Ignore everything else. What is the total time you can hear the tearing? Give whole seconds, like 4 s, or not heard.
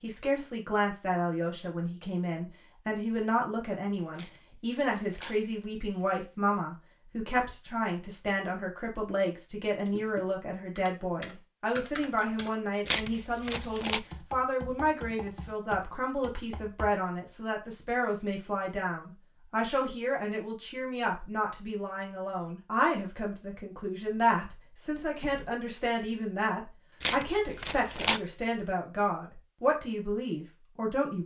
4 s.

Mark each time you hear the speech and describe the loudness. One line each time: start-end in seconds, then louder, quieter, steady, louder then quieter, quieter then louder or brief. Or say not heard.
0.0-31.2 steady.